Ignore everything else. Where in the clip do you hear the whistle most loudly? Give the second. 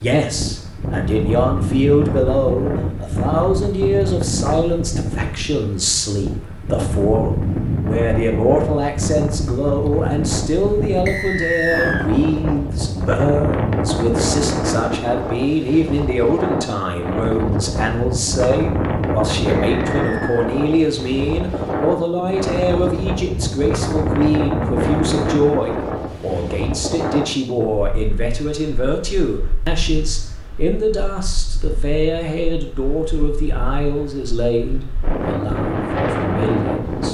12 s.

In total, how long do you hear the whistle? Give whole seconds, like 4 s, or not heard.
2 s.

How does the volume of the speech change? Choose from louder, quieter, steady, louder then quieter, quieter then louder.
steady.